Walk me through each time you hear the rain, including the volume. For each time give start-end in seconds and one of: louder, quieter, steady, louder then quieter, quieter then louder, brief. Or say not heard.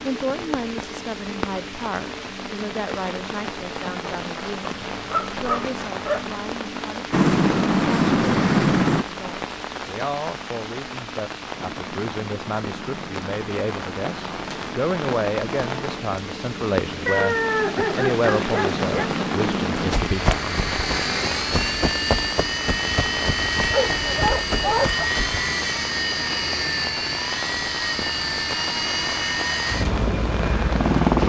0.0-31.2 steady.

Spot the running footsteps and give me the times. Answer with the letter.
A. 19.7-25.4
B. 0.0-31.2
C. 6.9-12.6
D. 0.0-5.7
A.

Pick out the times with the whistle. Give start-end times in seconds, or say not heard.
not heard.